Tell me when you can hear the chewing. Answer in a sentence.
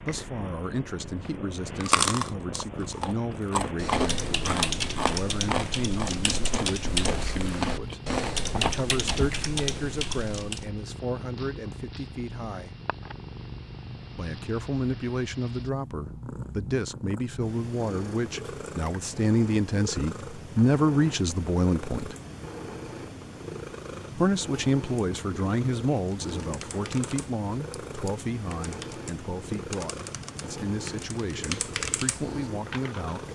You can hear the chewing from 1.8 to 9.5 s.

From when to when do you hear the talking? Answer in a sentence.
You can hear the talking from 0.0 to 12.8 s, from 14.2 to 22.1 s and from 24.1 to 33.3 s.